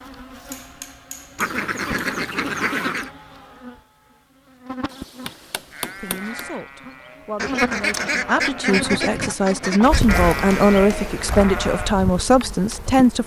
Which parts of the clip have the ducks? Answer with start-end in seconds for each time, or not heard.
1.4-3.1, 7.3-10.2.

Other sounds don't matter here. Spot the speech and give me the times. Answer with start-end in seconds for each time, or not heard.
6.0-13.2.